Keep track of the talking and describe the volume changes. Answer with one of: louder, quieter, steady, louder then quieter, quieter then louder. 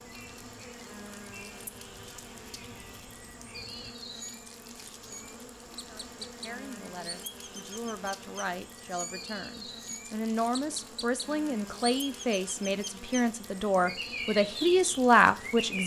louder.